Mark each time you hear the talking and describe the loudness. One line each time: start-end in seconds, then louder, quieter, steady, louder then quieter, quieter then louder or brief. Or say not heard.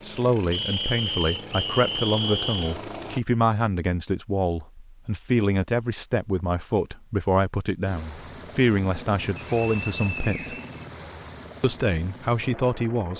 0.0-10.6 steady
11.6-13.1 brief.